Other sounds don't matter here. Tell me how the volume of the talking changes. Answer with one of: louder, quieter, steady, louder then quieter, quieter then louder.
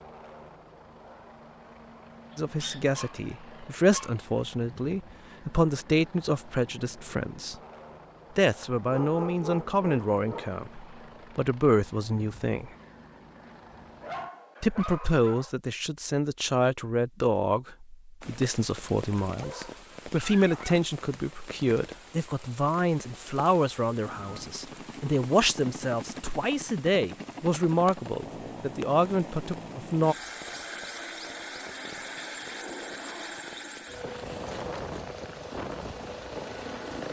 steady.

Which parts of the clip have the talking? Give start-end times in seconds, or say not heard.
2.4-7.5, 8.3-12.7, 14.6-30.1.